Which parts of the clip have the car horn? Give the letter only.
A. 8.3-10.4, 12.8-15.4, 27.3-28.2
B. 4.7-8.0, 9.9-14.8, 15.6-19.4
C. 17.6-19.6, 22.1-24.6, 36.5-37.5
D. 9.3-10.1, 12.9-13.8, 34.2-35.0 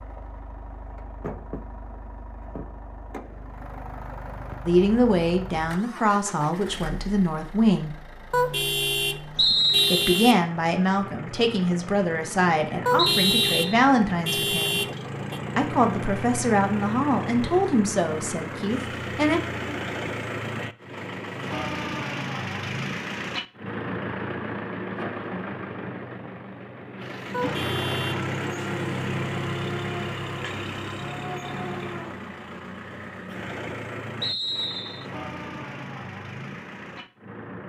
A.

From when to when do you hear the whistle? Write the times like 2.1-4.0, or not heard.
9.3-10.1, 12.9-13.8, 34.2-35.0.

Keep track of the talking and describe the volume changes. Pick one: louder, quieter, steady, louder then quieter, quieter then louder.
steady.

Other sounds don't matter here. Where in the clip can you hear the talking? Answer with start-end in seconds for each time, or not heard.
4.7-8.0, 9.9-14.8, 15.6-19.4.